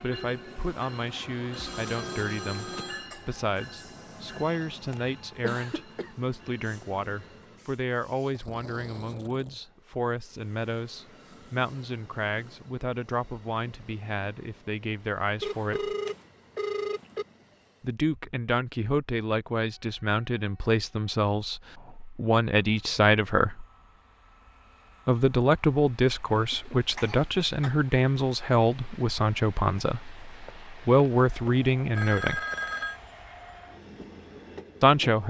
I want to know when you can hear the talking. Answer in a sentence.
You can hear the talking from 0.0 to 15.9 s, from 17.8 to 23.6 s, from 25.1 to 32.4 s and from 34.8 to 35.2 s.